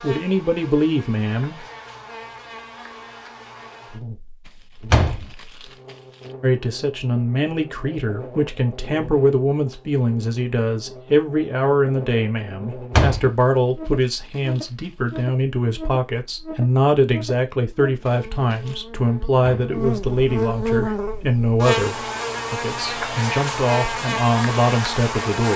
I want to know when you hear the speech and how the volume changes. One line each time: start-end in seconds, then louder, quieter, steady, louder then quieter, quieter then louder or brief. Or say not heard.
0.0-1.6 brief
6.4-25.5 steady.